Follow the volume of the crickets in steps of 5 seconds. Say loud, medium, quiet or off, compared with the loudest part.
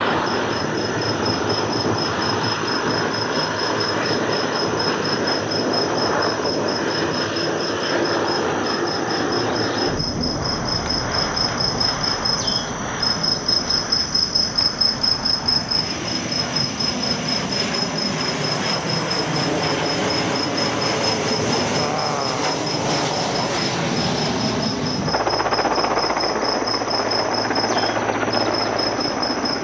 medium, medium, loud, loud, medium, medium.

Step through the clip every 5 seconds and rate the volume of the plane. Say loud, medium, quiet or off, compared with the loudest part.
loud, loud, medium, loud, loud, loud.